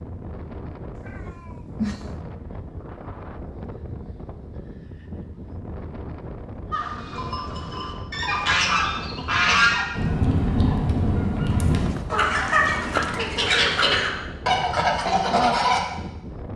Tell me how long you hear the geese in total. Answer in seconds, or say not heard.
9 s.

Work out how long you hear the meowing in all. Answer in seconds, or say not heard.
3 s.